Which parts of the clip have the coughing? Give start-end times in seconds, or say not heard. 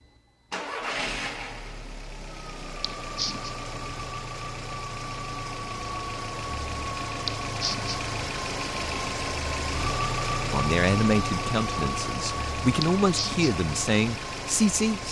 2.8-3.5, 7.2-8.0, 12.8-13.5.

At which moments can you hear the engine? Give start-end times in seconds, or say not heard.
0.0-15.0.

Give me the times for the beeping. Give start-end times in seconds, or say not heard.
not heard.